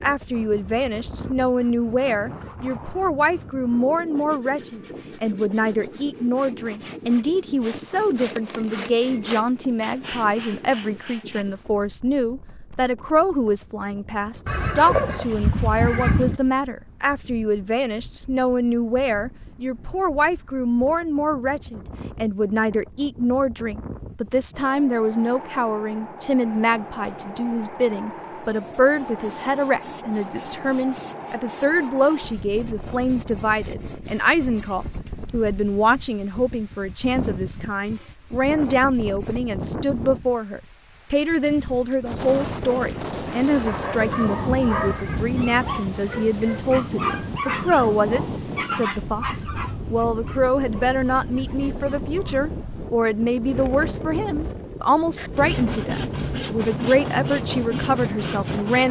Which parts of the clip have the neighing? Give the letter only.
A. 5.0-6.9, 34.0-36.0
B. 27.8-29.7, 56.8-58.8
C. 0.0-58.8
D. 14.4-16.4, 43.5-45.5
D.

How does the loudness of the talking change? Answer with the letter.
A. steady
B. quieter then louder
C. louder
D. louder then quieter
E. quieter
A.